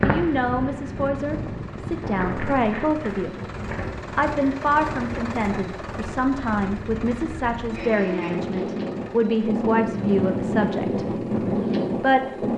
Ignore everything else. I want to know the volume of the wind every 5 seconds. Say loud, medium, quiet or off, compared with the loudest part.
medium, medium, loud.